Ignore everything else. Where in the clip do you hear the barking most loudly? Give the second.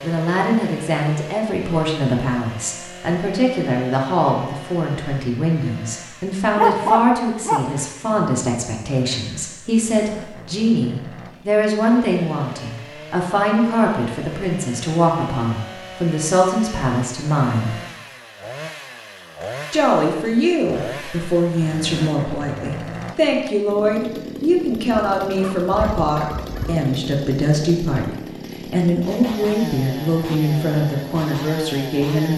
7 s.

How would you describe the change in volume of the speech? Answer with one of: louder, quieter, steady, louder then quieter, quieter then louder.
steady.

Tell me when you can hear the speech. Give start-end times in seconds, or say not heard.
0.0-17.8, 19.7-32.3.